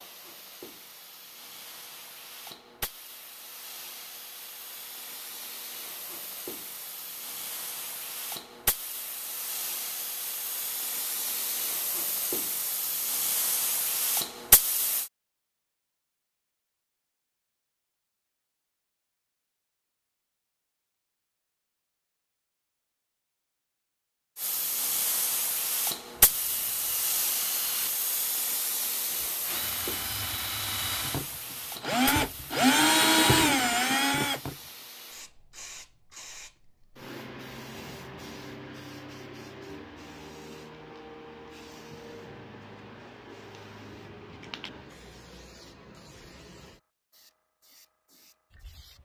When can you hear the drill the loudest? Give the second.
33 s.